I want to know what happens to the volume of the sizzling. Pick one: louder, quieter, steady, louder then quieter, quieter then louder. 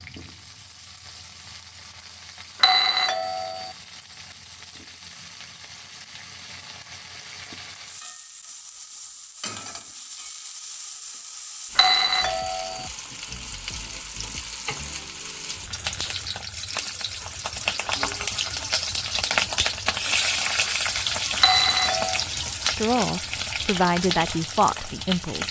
louder.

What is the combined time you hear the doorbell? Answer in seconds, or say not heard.
3 s.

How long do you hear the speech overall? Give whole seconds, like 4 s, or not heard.
3 s.